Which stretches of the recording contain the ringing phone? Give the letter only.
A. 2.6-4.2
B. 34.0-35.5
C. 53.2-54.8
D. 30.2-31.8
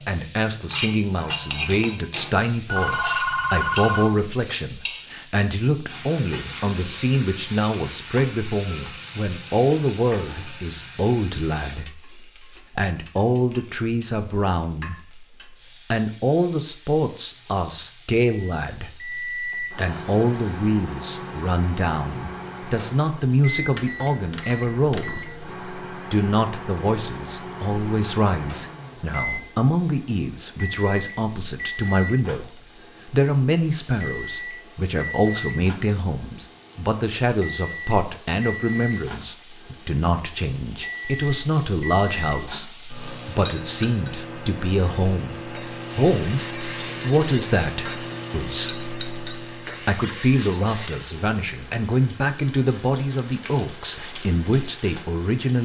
A.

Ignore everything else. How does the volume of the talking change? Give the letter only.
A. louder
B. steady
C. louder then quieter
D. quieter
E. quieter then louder
B.